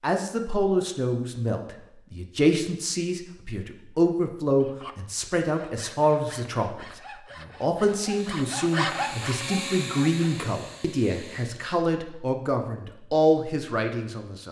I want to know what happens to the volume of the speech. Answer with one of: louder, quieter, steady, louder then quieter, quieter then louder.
steady.